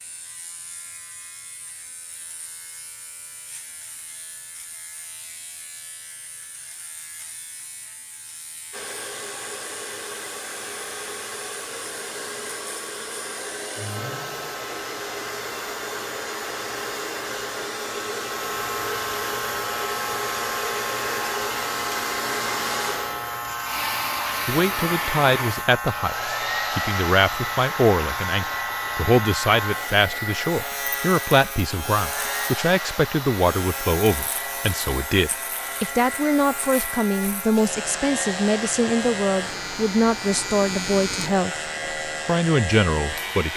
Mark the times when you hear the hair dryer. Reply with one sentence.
The hair dryer can be heard from 8.7 to 43.5 s.